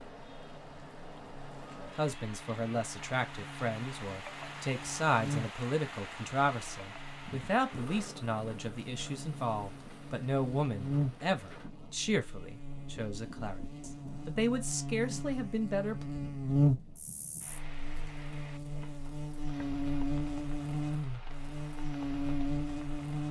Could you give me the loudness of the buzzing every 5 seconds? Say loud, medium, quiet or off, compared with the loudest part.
quiet, medium, medium, loud, loud.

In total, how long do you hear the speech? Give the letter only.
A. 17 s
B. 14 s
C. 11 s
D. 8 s
B.